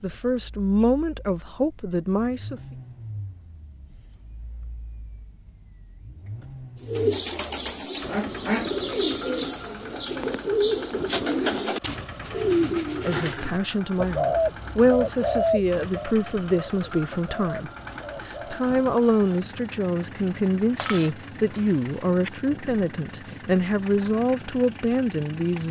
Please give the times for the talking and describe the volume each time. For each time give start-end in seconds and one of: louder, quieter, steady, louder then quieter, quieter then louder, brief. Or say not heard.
0.0-2.6 brief
13.1-25.6 steady.